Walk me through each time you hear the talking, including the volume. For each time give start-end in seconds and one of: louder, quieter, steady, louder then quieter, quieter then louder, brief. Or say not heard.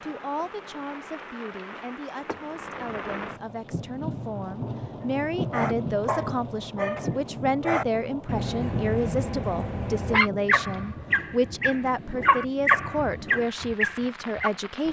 0.0-14.8 louder.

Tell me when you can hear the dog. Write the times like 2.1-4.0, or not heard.
5.0-14.5.